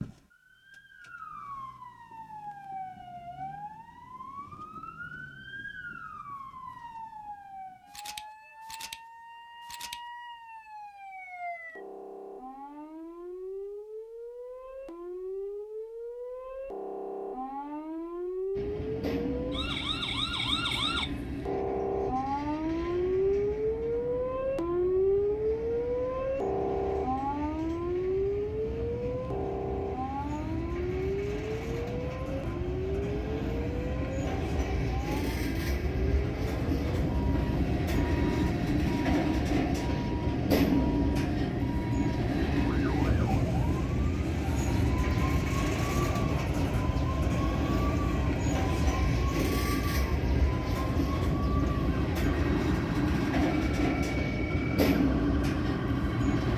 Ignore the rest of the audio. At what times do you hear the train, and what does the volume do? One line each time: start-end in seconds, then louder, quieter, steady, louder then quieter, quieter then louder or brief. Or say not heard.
18.6-56.5 louder.